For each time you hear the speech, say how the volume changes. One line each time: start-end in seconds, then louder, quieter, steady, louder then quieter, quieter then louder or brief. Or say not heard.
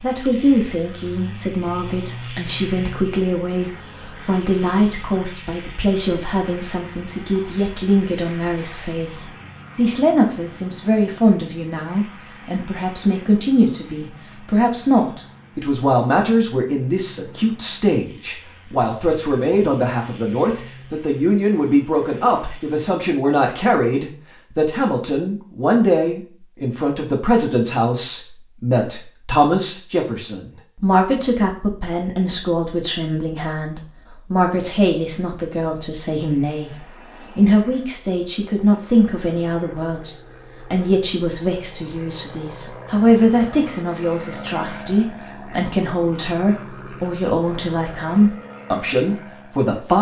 0.0-49.9 steady.